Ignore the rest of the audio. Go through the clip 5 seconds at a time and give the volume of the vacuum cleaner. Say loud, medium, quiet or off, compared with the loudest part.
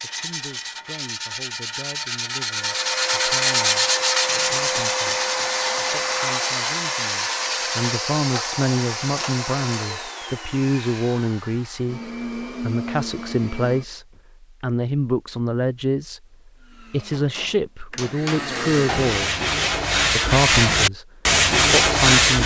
loud, loud, medium, medium, off.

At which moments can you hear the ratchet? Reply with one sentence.
You can't hear the ratchet here.